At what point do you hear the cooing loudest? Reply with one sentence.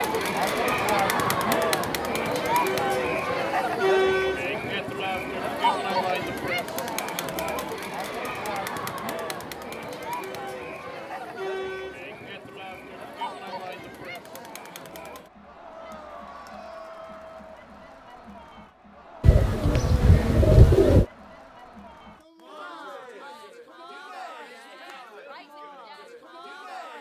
The loudest moment of the cooing is at 21 seconds.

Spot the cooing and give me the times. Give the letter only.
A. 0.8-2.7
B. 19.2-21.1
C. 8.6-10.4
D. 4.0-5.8
B.